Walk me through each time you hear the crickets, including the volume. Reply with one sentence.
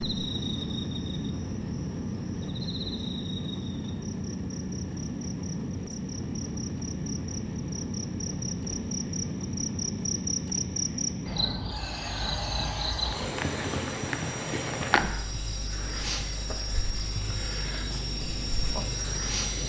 You can hear the crickets from 0.0 to 19.6 s, getting louder then quieter.